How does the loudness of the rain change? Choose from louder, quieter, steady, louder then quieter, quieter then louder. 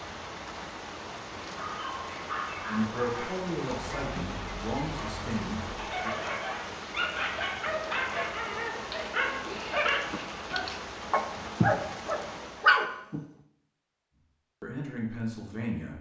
steady.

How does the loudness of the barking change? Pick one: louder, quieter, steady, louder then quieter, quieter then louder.
louder.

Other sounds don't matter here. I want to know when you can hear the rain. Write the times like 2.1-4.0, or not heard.
0.0-12.9.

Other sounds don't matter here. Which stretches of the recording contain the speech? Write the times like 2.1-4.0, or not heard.
2.6-6.2, 14.6-15.9.